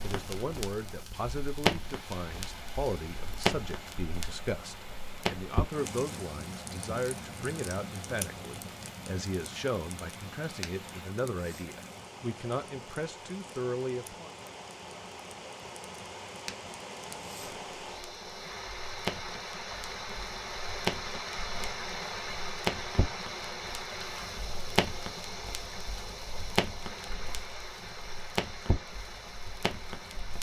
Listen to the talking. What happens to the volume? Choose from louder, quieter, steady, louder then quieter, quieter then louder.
steady.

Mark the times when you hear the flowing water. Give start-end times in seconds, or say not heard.
0.0-30.3.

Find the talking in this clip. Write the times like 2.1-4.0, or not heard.
0.0-14.3.